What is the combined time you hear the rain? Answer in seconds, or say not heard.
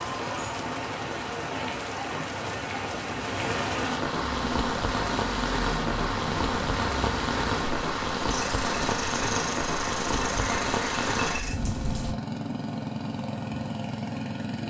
12 s.